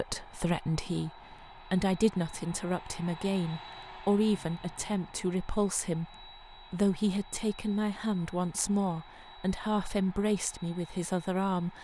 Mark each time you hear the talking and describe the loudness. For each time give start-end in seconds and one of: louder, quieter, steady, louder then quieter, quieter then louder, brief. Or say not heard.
0.0-11.7 steady.